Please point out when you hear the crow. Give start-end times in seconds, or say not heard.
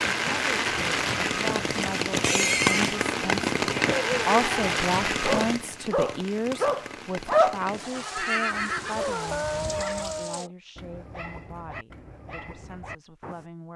not heard.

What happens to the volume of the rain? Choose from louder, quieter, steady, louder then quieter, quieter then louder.
quieter.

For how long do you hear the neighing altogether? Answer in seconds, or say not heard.
3 s.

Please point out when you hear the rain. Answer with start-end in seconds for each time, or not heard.
0.0-10.5.